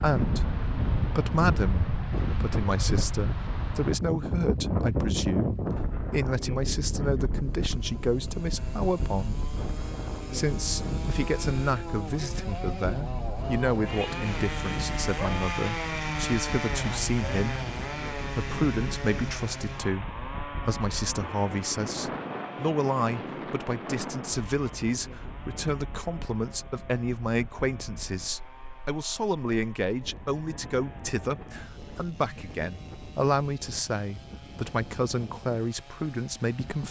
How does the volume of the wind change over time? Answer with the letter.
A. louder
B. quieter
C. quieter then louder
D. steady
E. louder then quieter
B.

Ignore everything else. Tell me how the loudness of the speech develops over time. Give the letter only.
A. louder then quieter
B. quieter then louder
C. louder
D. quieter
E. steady
E.